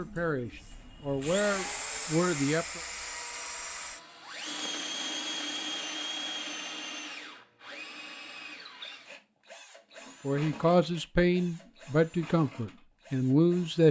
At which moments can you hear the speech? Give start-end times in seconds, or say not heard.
0.0-2.8, 10.2-13.8.